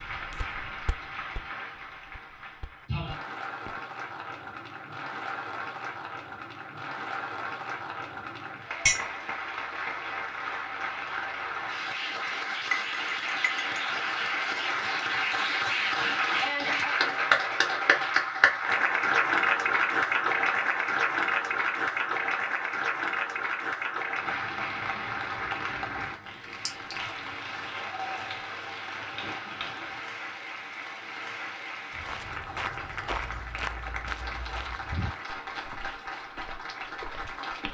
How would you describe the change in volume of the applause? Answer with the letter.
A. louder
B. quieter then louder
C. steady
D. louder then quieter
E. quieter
D.